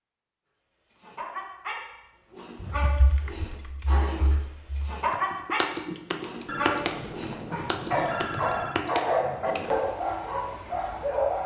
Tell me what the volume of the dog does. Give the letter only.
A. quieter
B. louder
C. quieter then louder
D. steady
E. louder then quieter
B.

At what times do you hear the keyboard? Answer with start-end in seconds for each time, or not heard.
2.8-9.8.